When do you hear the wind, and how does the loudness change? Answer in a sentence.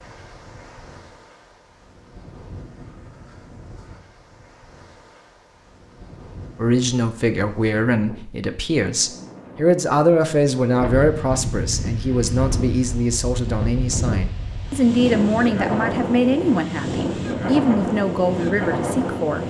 The wind can be heard from 0.0 to 19.4 s, getting louder.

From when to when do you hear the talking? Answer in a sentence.
You can hear the talking from 6.5 to 19.4 s.